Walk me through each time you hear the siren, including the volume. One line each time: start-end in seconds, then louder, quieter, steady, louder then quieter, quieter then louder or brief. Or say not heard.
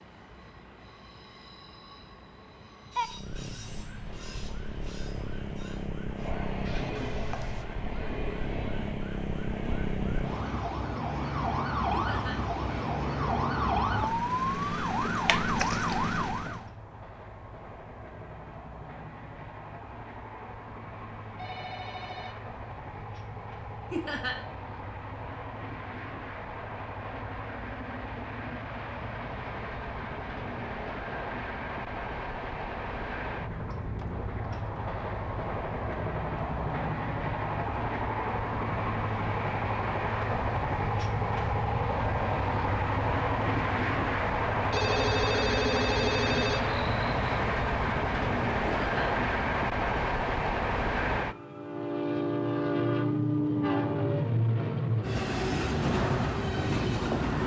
3.0-16.7 louder.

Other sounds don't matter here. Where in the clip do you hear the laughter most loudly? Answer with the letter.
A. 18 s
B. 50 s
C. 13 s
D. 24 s
D.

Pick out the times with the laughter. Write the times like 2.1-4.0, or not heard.
11.9-12.4, 23.9-24.4, 48.6-49.1.